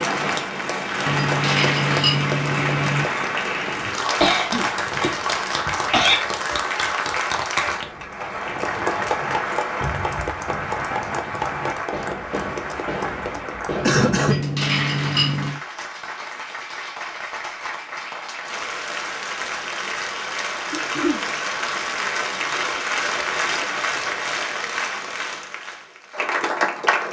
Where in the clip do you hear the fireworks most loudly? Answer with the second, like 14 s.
14 s.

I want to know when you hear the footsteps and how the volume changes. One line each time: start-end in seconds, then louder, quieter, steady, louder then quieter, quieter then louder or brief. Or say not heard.
not heard.